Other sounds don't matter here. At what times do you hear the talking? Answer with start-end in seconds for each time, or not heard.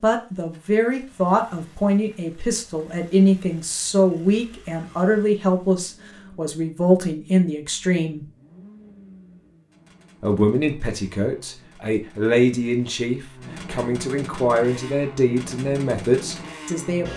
0.0-8.2, 10.2-17.1.